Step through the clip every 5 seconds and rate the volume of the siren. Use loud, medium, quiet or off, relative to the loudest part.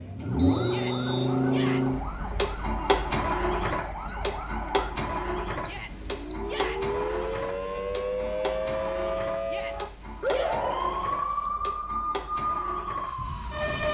medium, loud, loud.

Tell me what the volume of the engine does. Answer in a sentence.
The loudness of the engine goes down.